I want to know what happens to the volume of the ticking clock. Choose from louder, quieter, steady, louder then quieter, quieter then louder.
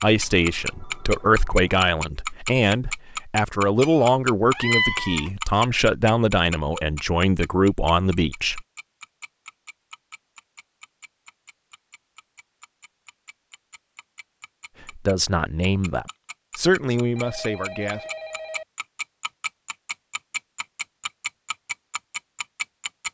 quieter then louder.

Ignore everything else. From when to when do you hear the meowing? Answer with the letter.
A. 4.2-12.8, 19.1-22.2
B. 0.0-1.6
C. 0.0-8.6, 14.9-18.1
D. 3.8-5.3
D.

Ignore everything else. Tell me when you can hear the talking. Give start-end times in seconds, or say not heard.
0.0-8.6, 14.9-18.1.